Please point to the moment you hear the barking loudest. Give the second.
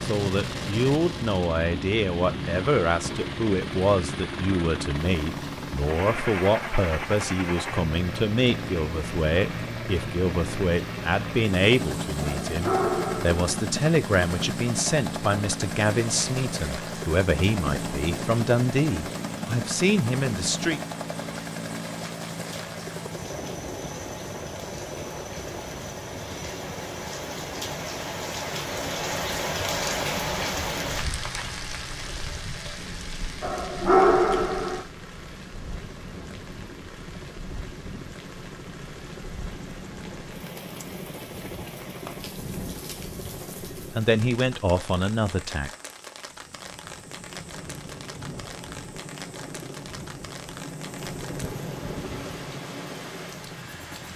34 s.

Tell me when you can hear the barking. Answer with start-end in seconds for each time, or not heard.
12.2-13.6, 33.4-34.8.